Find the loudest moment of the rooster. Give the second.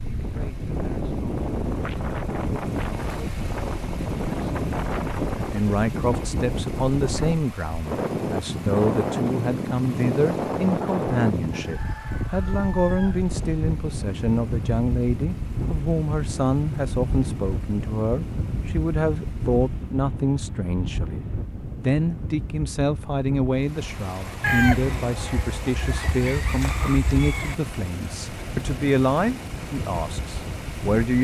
25 s.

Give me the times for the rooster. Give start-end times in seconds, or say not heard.
11.5-13.3, 24.4-27.6.